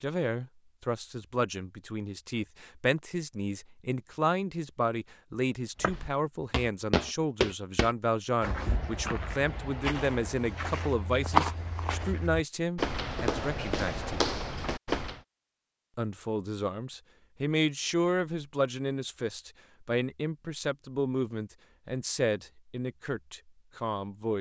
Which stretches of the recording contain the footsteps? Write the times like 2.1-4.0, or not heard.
5.8-15.2.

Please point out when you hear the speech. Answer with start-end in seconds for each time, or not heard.
0.0-14.2, 15.9-24.3.